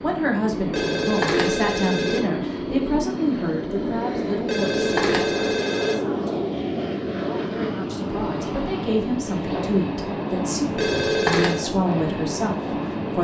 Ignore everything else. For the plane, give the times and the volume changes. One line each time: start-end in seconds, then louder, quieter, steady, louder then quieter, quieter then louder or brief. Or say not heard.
0.0-13.2 steady.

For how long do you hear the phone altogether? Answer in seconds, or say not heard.
4 s.